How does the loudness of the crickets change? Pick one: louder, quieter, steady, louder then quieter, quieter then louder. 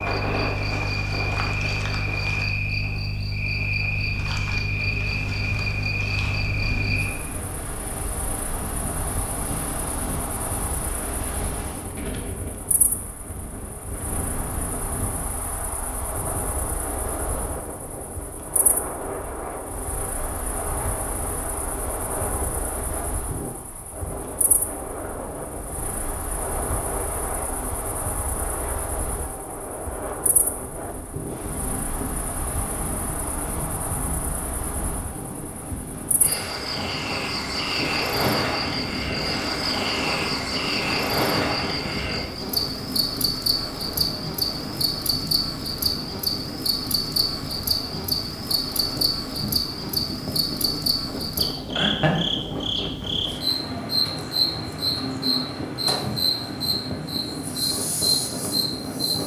quieter then louder.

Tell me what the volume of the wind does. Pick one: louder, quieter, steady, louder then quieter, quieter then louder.
steady.